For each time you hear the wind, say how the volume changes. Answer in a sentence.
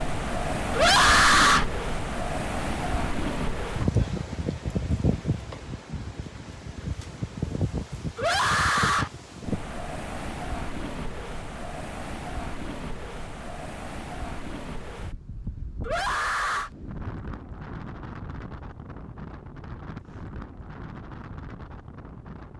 You can hear the wind from 0.0 to 22.5 s, getting quieter.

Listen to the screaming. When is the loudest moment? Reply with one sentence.
The loudest moment of the screaming is at 1 second.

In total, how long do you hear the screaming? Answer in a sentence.
You can hear the screaming for 3 seconds altogether.